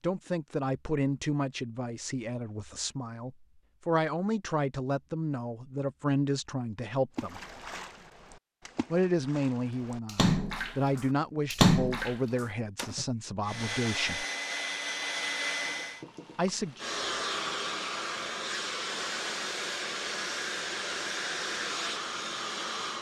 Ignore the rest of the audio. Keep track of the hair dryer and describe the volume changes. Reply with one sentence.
The loudness of the hair dryer stays about the same.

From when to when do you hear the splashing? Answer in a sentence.
You can hear the splashing from 7.2 to 13.1 s.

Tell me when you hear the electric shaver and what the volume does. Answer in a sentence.
You can't hear the electric shaver here.